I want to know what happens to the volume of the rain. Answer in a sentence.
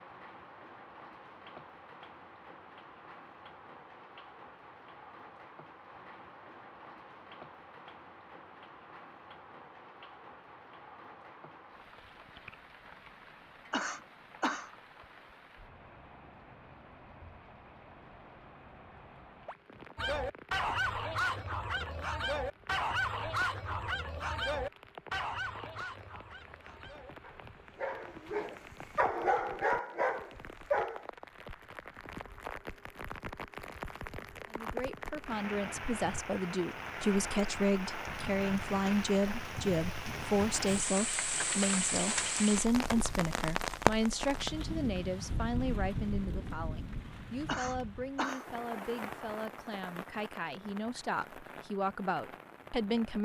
The loudness of the rain goes up.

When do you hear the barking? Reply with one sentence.
You can hear the barking from 19.9 to 31.2 s.